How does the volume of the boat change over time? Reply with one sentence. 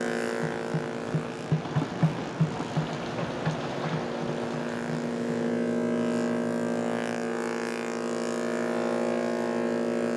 The loudness of the boat goes up.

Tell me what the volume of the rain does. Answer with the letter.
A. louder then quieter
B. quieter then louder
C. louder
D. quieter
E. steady
A.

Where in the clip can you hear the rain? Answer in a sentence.
You can hear the rain from 0.0 to 5.5 s.